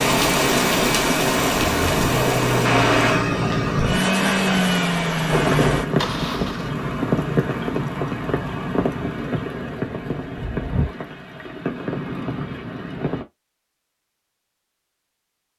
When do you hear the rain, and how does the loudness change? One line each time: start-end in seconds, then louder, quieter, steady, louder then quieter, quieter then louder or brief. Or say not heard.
0.0-13.2 quieter.